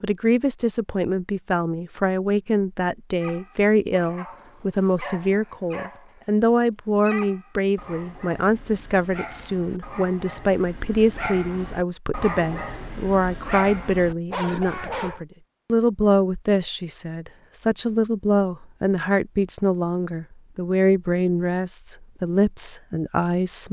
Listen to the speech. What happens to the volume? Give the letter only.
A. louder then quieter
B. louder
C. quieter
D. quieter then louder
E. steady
E.